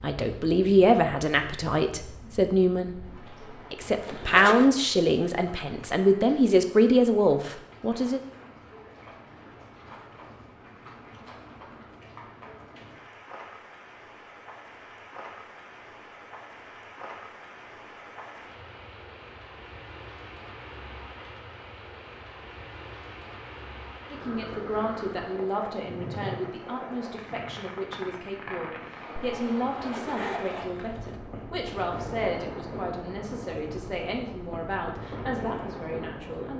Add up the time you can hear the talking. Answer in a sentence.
The talking can be heard for 20 seconds in total.